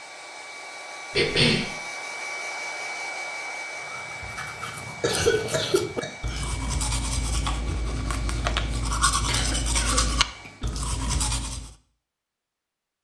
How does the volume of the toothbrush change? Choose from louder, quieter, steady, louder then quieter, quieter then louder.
louder.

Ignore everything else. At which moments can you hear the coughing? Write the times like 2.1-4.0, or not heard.
1.1-1.7, 5.0-6.5, 9.2-10.7.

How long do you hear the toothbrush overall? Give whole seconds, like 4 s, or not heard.
8 s.